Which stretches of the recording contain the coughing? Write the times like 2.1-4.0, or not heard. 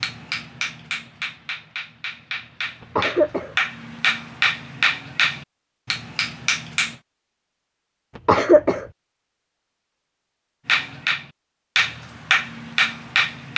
3.0-3.5, 8.2-8.8.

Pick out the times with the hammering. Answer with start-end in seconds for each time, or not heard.
0.0-7.0, 10.7-13.5.